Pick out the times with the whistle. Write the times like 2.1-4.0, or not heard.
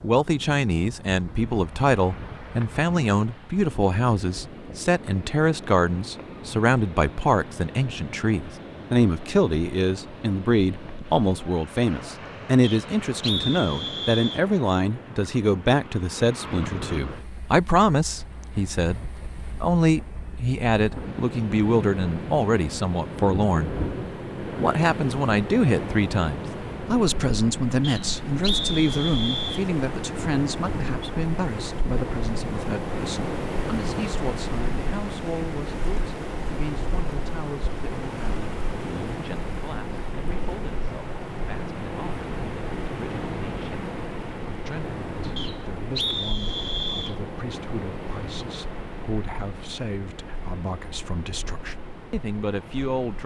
12.6-14.4, 27.8-29.6, 45.4-47.1.